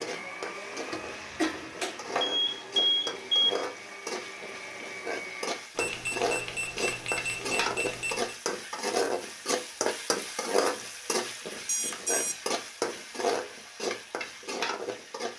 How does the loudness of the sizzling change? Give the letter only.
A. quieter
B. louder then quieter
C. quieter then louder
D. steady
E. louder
E.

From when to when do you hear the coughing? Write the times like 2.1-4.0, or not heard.
0.9-1.7.